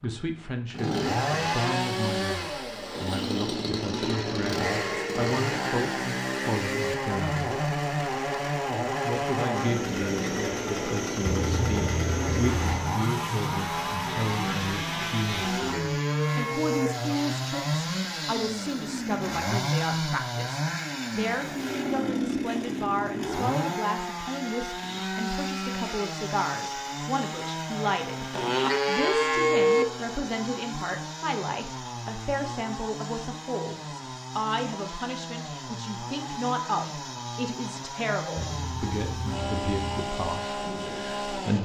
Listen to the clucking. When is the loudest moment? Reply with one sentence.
The volume of the clucking peaks at 12 seconds.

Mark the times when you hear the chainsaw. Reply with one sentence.
You can hear the chainsaw from 0.0 to 41.5 s.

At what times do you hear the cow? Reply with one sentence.
The cow can be heard from 3.8 to 5.3 s, from 15.3 to 16.9 s and from 28.4 to 29.9 s.